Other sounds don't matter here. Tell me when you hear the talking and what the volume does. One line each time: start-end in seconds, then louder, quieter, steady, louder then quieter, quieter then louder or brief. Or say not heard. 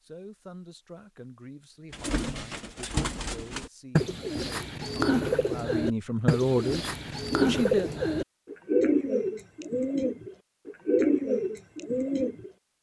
0.0-7.9 louder.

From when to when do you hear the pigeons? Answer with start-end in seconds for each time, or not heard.
1.9-12.5.